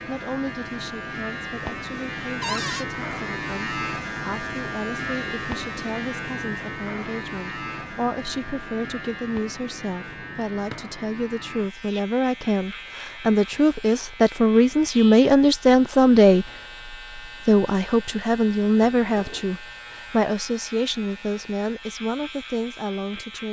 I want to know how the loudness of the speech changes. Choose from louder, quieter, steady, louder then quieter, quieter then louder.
louder then quieter.